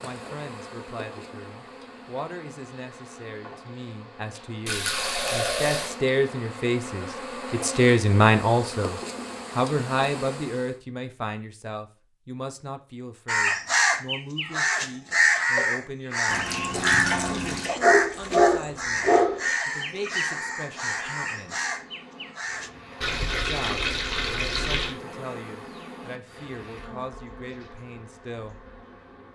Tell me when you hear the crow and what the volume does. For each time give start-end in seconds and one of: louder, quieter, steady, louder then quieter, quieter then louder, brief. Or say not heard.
13.2-22.7 quieter.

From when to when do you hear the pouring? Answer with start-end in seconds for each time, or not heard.
4.7-6.0, 16.2-17.8, 23.0-24.9.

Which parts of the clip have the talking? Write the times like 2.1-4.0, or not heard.
0.0-16.5, 17.3-21.6, 23.4-28.6.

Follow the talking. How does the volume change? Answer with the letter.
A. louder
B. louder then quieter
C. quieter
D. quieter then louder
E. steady
B.